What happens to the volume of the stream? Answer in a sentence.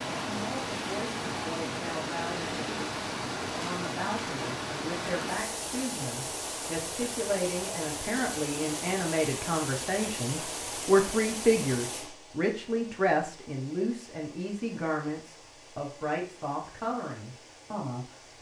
The loudness of the stream goes down.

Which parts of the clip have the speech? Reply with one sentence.
You can hear the speech from 0.2 to 18.3 s.